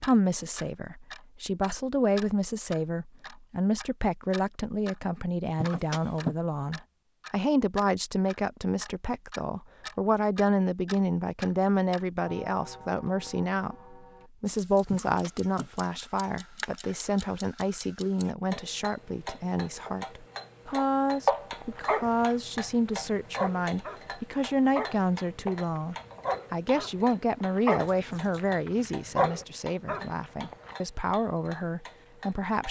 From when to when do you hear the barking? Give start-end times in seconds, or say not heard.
21.5-30.8.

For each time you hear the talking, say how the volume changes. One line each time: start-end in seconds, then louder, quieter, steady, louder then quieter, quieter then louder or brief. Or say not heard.
0.0-32.6 steady.